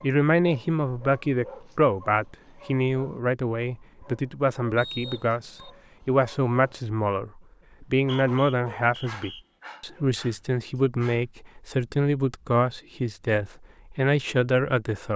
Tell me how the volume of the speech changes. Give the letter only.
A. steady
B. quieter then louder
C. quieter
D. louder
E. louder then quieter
A.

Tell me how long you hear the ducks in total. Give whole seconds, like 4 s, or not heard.
not heard.